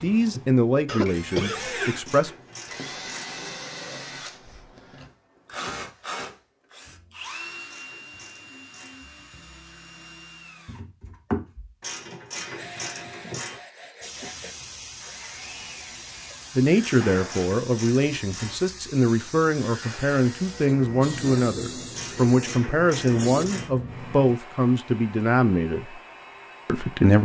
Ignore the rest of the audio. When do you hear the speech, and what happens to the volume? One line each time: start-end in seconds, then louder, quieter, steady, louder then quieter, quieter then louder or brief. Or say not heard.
0.0-2.3 brief
16.6-26.0 steady
26.6-27.2 brief.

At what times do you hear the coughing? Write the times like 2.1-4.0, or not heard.
0.8-1.8.